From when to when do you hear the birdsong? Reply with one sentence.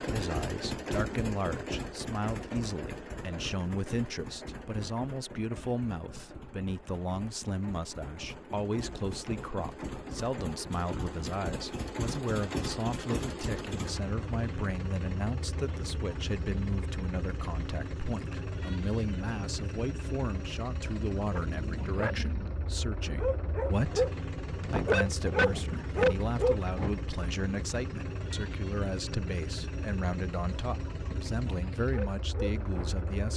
The birdsong can't be heard in this clip.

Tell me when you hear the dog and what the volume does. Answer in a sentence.
The dog can be heard from 21.3 to 26.9 s, getting louder; and briefly from 31.8 to 33.0 s.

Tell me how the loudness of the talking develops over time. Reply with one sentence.
The loudness of the talking stays about the same.